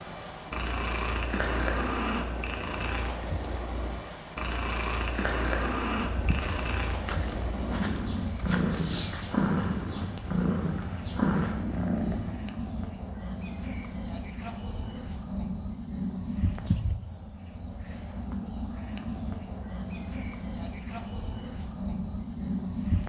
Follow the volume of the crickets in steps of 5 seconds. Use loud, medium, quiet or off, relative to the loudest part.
loud, medium, medium, medium, medium.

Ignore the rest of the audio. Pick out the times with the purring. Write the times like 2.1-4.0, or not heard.
0.0-12.3.